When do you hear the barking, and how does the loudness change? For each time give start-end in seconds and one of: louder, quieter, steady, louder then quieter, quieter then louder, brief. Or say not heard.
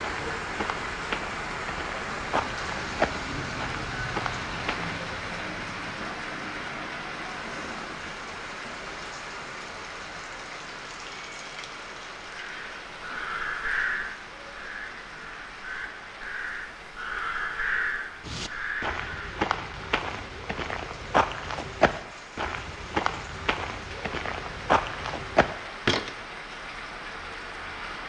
not heard.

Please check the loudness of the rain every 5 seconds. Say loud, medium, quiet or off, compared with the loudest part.
loud, loud, medium, medium, medium, medium.